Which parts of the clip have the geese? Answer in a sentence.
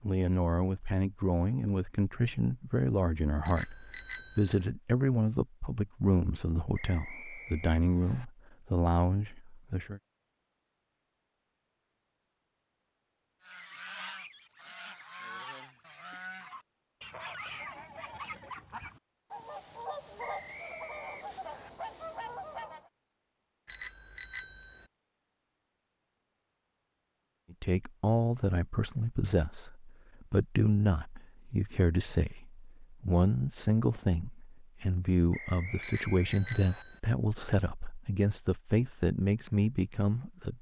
You can hear the geese from 13.4 to 22.9 s.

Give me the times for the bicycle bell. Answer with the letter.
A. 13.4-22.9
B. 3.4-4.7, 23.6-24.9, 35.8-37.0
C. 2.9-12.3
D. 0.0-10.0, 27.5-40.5
B.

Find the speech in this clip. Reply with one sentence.
The speech can be heard from 0.0 to 10.0 s and from 27.5 to 40.5 s.